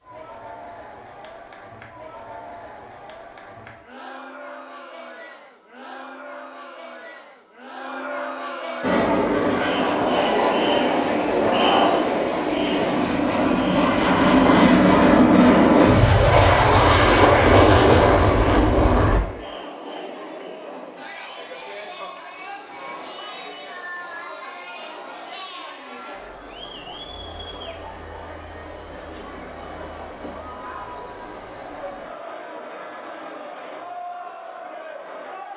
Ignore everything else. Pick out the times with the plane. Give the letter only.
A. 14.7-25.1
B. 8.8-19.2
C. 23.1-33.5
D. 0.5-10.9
B.